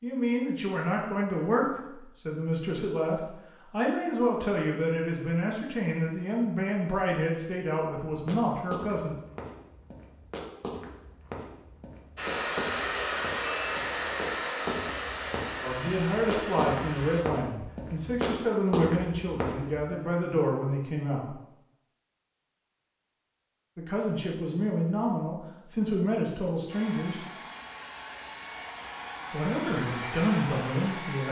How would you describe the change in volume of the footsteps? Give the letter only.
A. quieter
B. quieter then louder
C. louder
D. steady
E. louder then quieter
C.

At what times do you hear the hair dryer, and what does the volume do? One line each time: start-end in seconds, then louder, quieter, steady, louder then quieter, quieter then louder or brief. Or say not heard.
12.2-17.2 quieter
26.7-31.2 louder.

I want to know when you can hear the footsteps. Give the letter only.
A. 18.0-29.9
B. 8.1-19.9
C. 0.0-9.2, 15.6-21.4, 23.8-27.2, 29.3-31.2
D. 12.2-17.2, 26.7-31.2
B.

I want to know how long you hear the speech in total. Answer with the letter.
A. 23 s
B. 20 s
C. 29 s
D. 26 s
B.